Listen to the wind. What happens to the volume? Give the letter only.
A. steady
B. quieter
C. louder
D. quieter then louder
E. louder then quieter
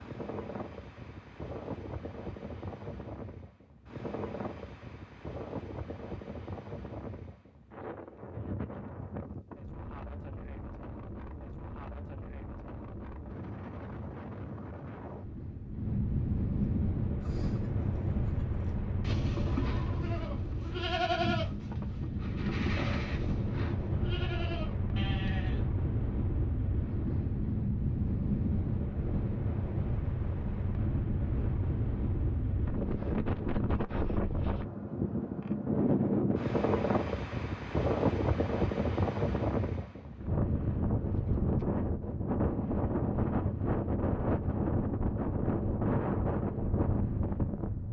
C.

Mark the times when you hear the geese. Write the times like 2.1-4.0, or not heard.
not heard.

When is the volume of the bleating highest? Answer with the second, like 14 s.
21 s.